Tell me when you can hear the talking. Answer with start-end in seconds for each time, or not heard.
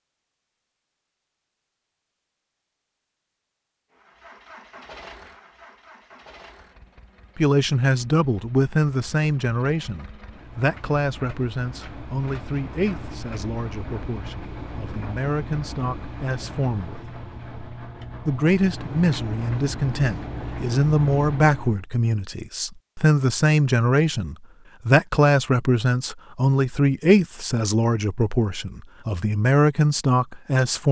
7.3-17.0, 18.2-30.8.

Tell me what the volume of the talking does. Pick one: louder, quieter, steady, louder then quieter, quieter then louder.
quieter then louder.